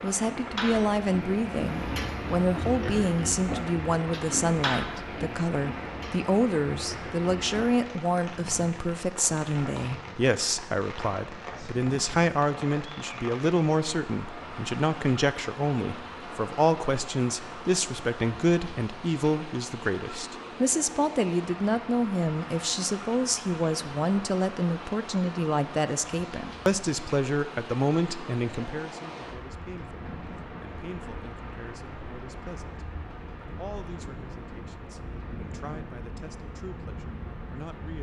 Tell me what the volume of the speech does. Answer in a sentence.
The loudness of the speech goes down.